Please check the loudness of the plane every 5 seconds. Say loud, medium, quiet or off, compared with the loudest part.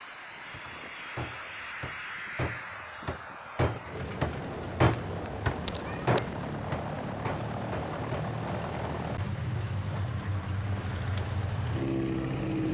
medium, loud, loud.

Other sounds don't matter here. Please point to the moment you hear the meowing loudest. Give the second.
6 s.